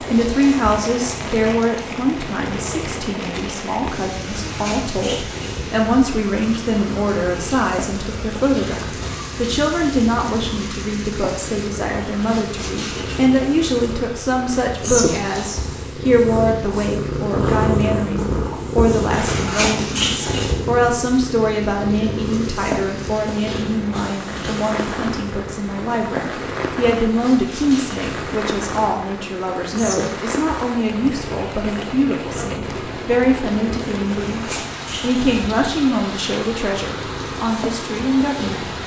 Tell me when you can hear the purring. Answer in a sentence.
The purring can be heard from 0.0 to 38.8 s.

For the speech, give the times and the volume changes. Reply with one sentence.
The speech can be heard from 0.0 to 38.6 s, at a steady volume.